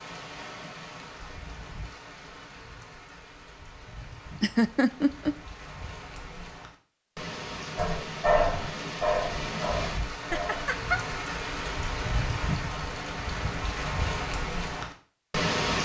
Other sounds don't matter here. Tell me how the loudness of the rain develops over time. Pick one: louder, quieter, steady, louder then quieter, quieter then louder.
louder.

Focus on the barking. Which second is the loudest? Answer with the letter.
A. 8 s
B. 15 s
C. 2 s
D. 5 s
A.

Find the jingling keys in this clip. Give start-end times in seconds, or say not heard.
not heard.